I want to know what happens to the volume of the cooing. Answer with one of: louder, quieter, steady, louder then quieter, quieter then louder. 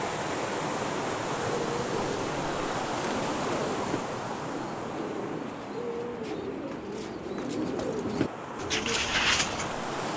louder.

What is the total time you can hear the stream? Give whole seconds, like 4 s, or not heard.
10 s.